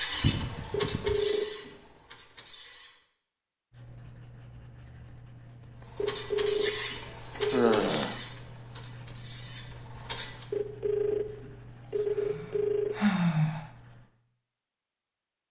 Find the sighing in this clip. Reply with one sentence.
You can hear the sighing from 0.2 to 1.2 s, from 7.5 to 8.2 s and from 11.8 to 13.7 s.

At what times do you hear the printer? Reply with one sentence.
The printer can be heard from 0.0 to 3.0 s and from 5.8 to 10.4 s.